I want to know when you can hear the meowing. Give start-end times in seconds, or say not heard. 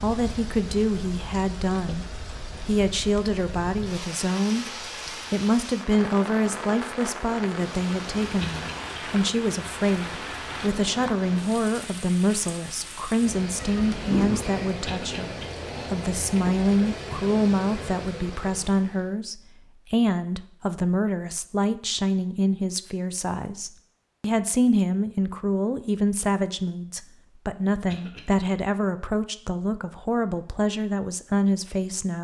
13.6-14.4.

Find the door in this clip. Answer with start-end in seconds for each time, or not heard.
not heard.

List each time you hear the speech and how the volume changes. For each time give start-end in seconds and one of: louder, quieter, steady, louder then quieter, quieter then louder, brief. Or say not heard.
0.0-2.0 brief
2.6-32.1 steady.